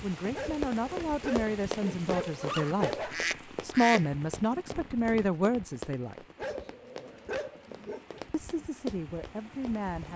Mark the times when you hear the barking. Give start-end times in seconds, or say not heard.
0.3-3.1, 6.3-8.2.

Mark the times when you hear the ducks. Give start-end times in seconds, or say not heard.
2.6-4.0.